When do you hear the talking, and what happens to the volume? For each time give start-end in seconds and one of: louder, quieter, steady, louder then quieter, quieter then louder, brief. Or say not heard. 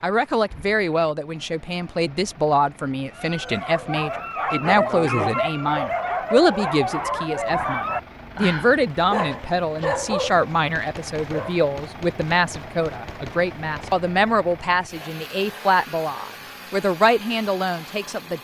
0.0-18.3 steady.